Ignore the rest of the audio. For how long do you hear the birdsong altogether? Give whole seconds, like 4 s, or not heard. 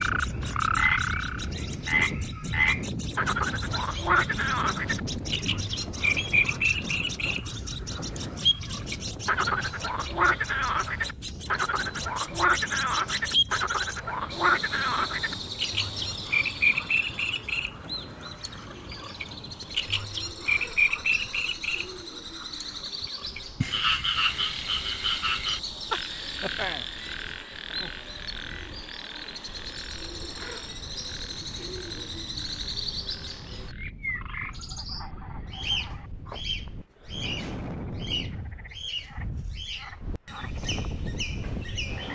42 s.